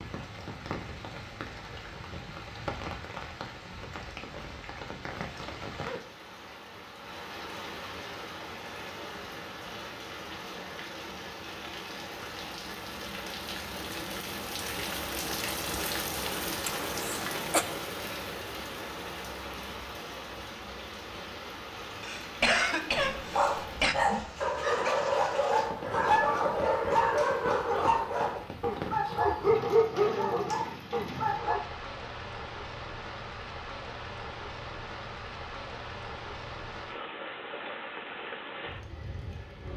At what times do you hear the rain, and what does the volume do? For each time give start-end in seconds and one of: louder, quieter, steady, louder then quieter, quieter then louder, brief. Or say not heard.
0.0-39.7 steady.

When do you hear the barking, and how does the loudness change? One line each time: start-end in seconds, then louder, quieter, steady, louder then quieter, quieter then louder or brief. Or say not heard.
22.9-31.6 steady.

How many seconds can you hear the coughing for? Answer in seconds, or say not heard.
3 s.